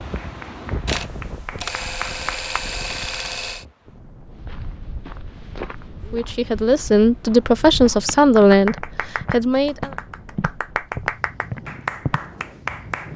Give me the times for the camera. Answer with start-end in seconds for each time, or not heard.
0.8-3.6.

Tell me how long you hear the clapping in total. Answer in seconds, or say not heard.
7 s.